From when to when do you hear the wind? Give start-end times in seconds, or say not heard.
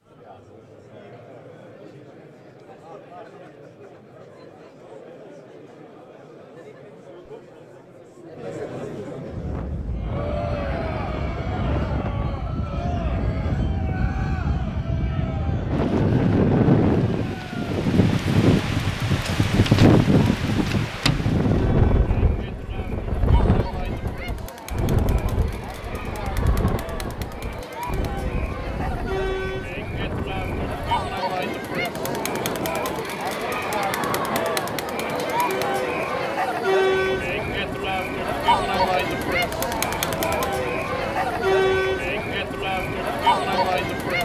9.3-44.2.